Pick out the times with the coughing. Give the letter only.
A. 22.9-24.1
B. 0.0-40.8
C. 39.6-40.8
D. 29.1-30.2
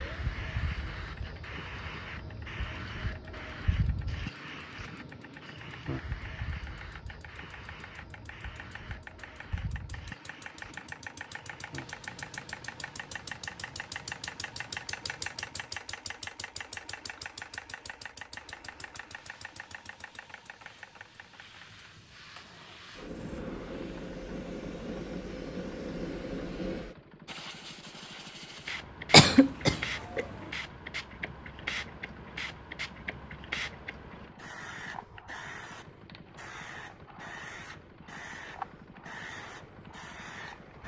D.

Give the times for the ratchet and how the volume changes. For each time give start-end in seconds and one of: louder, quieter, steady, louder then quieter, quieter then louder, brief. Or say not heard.
not heard.